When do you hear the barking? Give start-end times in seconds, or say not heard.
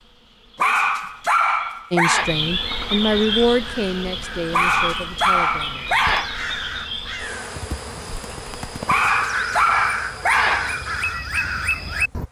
0.6-2.3, 4.5-6.3, 8.8-10.8.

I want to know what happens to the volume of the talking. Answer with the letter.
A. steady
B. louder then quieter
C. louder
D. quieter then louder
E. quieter
B.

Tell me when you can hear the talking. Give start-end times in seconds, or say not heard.
1.9-6.0.